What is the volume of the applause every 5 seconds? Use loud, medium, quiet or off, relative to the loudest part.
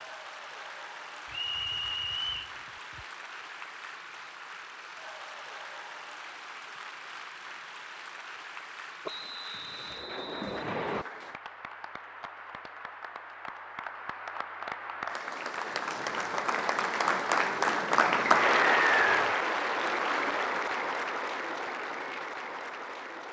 quiet, quiet, quiet, loud, medium.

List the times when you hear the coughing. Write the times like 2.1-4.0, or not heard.
not heard.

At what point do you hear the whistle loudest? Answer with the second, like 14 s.
19 s.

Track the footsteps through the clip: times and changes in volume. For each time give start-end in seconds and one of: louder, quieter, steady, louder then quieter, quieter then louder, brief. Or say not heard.
not heard.